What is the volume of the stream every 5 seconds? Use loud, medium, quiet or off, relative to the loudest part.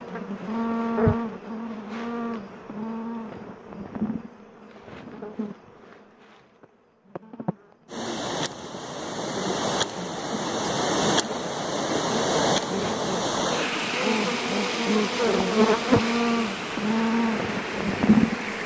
off, loud, loud, medium.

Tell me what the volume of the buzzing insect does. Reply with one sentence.
The volume of the buzzing insect goes down, then up.